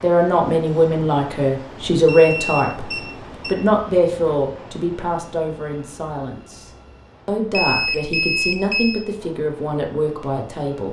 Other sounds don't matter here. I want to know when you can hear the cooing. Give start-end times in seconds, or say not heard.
not heard.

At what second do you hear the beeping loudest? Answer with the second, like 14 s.
8 s.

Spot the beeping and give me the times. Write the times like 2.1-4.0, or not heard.
2.0-3.5, 7.5-9.1.